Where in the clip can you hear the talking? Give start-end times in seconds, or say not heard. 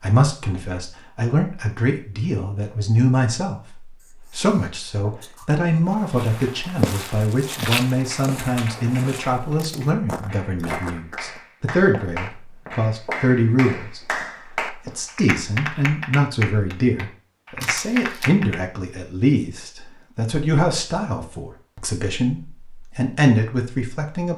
0.0-14.0, 14.7-24.3.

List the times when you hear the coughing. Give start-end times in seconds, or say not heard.
not heard.